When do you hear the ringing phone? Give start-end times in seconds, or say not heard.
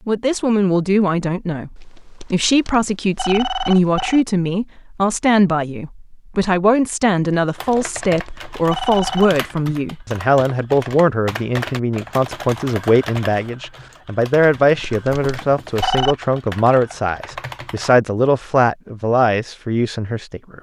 1.8-4.2, 7.5-9.3, 14.4-16.1.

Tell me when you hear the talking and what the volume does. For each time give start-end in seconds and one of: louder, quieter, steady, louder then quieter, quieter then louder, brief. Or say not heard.
0.1-20.5 steady.